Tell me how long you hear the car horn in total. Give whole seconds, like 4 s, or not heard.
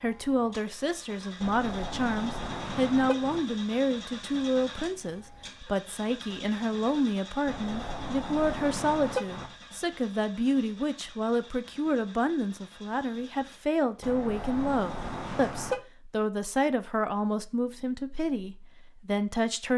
6 s.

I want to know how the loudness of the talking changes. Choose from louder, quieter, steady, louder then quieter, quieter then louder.
steady.